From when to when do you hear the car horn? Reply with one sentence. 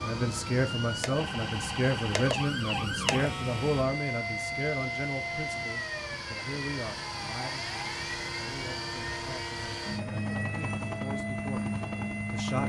You can't hear the car horn here.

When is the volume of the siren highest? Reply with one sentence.
The loudest moment of the siren is at 3 seconds.